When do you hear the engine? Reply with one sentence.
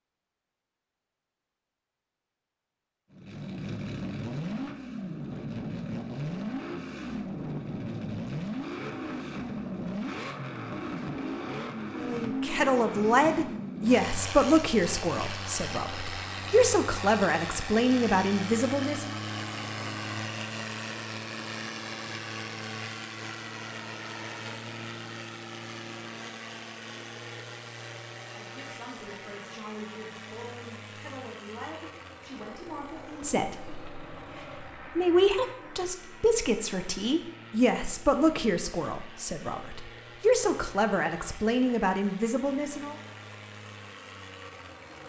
The engine can be heard from 3.1 to 45.0 s.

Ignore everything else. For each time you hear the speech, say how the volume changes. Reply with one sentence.
You can hear the speech from 11.9 to 19.1 s, getting quieter then louder; and from 28.3 to 43.0 s, getting louder.